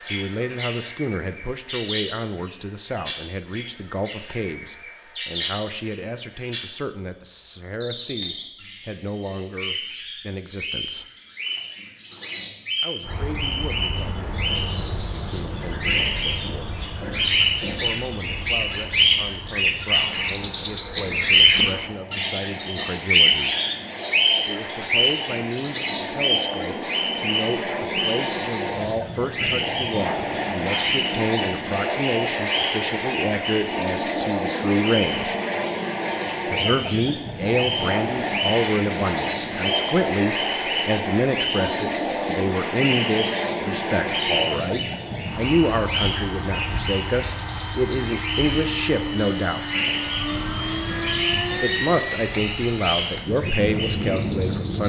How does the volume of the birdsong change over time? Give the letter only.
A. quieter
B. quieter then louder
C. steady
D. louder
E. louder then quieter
E.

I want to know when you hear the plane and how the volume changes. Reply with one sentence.
You can hear the plane from 13.0 to 54.8 s, getting louder.